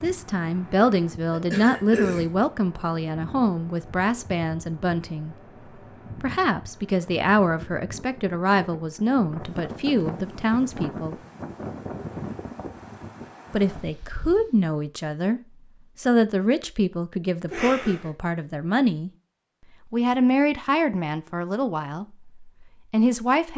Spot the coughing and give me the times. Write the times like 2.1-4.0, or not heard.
1.3-2.2, 17.5-18.1.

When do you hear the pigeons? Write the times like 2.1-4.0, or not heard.
not heard.